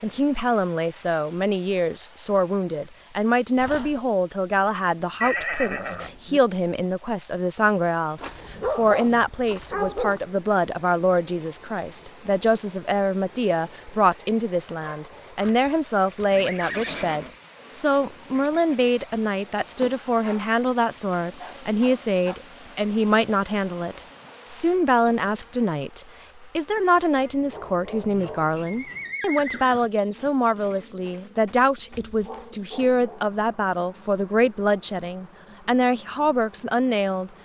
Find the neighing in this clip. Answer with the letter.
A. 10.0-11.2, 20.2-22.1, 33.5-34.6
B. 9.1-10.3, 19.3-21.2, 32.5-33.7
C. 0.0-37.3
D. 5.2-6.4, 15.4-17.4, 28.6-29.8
D.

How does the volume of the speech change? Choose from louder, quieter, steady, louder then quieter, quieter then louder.
steady.